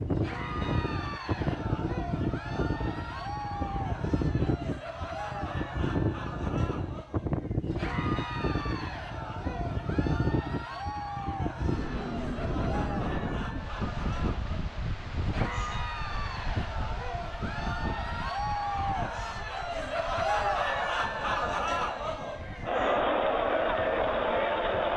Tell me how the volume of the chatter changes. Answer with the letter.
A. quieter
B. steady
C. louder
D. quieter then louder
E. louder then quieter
C.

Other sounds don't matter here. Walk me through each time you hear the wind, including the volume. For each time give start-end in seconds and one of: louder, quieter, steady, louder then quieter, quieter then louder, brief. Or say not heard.
0.0-24.9 quieter.